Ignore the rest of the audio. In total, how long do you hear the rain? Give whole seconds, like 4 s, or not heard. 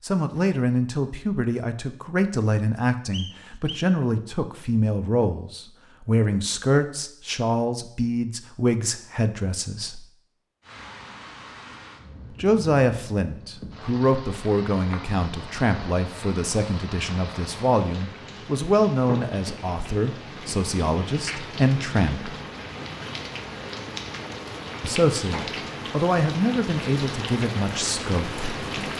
18 s.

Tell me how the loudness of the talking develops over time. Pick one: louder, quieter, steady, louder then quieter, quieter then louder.
steady.